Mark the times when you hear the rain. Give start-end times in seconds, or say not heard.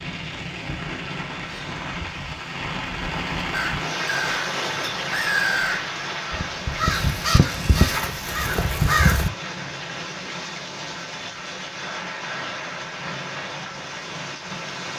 0.0-14.9.